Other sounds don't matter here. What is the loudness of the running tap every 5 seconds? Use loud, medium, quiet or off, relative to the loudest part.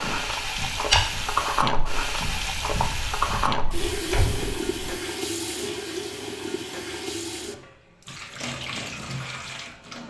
loud, medium.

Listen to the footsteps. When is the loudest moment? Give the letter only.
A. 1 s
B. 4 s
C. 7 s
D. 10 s
A.